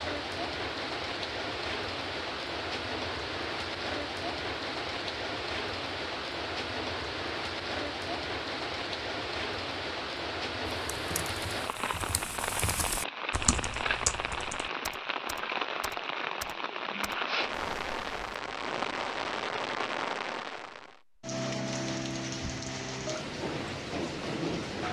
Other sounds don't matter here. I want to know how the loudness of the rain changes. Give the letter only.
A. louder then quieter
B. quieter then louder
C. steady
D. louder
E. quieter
C.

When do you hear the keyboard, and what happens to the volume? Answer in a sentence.
You can hear the keyboard from 10.8 to 18.4 s, getting louder then quieter.